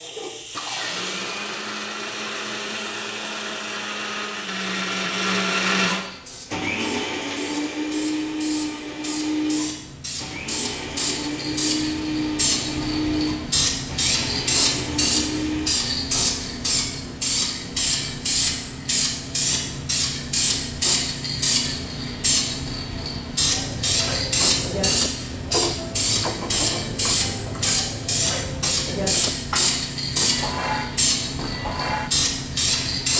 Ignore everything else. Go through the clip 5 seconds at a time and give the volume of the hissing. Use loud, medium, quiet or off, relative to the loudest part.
quiet, quiet, loud, loud, loud, loud, loud.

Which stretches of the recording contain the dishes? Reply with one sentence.
The dishes can be heard from 23.5 to 32.1 s.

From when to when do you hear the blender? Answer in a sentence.
The blender can be heard from 0.0 to 15.8 s.